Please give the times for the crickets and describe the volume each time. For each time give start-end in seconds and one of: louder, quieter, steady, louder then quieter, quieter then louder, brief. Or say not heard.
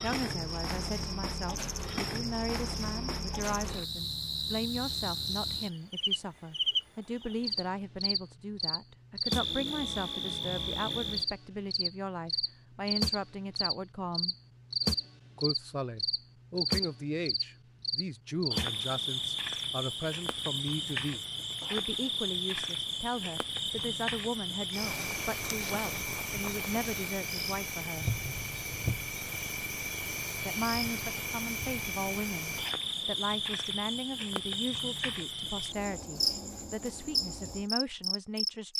0.0-38.7 steady.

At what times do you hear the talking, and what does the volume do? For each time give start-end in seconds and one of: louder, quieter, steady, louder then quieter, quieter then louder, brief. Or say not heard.
0.0-14.3 steady
15.3-28.1 steady
30.4-38.7 steady.